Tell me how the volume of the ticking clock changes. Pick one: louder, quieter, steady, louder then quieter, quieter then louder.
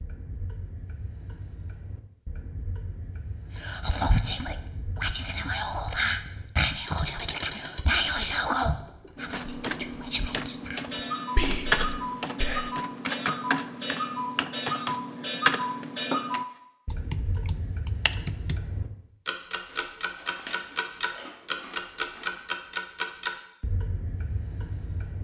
louder.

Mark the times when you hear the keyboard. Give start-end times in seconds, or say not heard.
9.2-18.6.